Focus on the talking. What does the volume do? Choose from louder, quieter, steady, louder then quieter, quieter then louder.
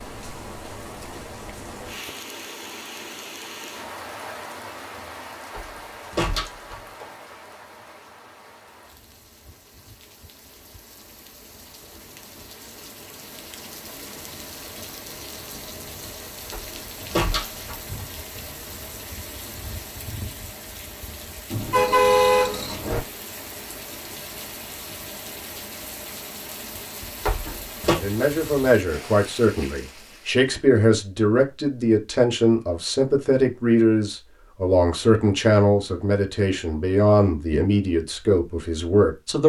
steady.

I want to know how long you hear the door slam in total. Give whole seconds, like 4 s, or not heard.
4 s.